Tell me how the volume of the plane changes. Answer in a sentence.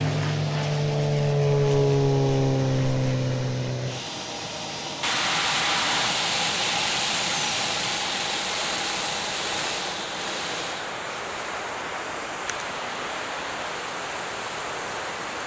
The volume of the plane goes down.